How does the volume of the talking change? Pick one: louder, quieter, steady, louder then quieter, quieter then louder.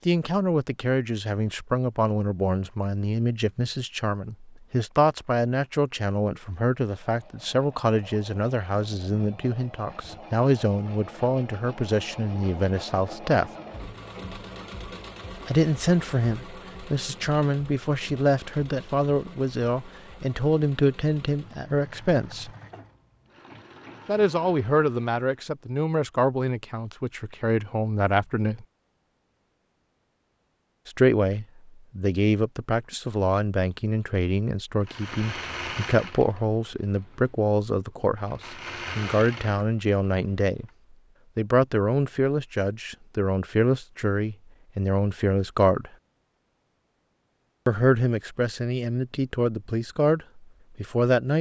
steady.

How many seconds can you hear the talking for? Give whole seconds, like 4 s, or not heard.
43 s.